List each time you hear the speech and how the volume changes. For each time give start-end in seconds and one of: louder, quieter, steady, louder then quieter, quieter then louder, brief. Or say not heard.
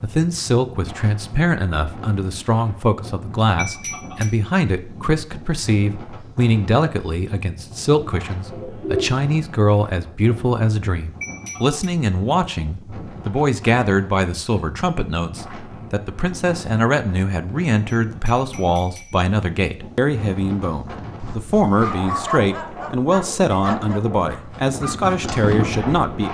0.0-26.2 steady.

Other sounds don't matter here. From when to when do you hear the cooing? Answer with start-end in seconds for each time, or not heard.
8.0-9.1.